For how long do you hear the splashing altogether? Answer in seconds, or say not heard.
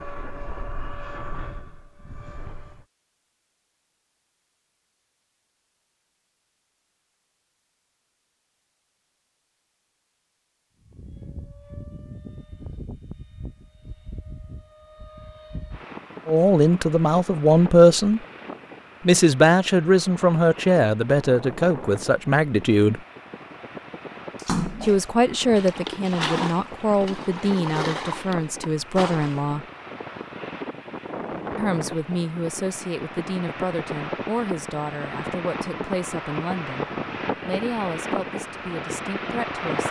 5 s.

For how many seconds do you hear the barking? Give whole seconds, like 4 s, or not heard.
not heard.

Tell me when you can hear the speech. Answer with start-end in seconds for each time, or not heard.
16.2-18.2, 19.1-23.0, 24.8-29.6, 31.6-39.8.